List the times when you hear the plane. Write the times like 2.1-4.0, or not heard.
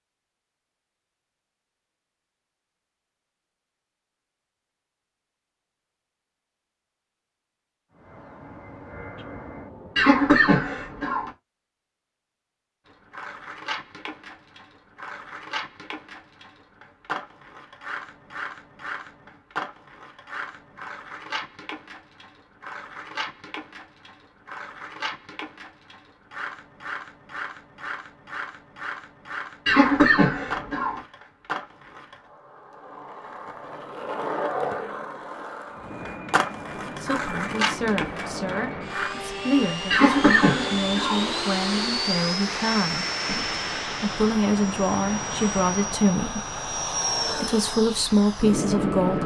7.9-10.2, 35.7-49.2.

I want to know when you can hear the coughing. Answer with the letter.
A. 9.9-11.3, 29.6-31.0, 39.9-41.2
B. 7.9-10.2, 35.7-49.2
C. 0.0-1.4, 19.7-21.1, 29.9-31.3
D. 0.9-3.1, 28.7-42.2
A.